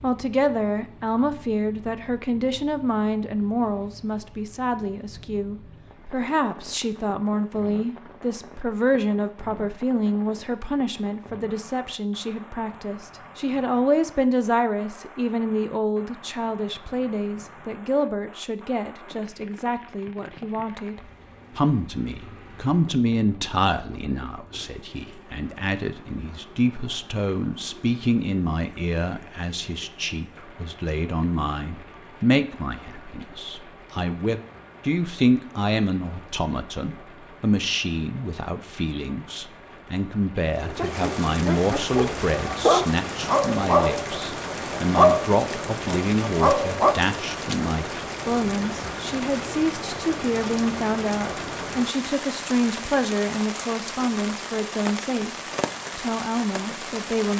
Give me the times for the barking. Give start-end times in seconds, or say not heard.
40.8-47.0.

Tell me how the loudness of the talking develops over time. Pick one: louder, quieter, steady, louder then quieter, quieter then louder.
steady.